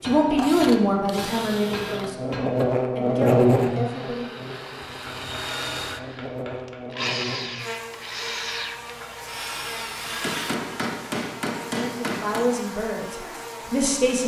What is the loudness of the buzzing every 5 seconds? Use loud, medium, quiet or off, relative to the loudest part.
loud, quiet, quiet.